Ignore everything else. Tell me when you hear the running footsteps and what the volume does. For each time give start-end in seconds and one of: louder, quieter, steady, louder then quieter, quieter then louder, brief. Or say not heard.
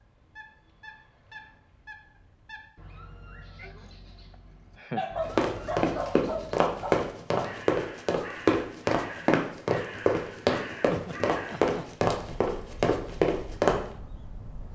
5.2-13.8 steady.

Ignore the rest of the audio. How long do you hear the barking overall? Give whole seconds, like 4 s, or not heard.
2 s.